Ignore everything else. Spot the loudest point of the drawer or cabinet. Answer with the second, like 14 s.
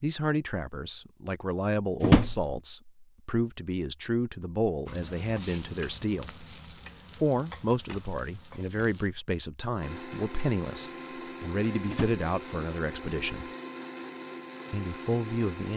2 s.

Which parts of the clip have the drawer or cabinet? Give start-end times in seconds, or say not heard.
2.0-2.5, 11.8-12.2.